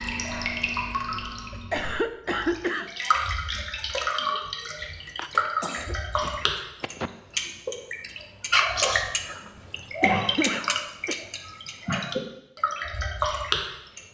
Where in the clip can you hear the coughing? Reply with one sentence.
You can hear the coughing from 1.5 to 2.9 s, from 5.2 to 7.1 s and from 9.6 to 11.2 s.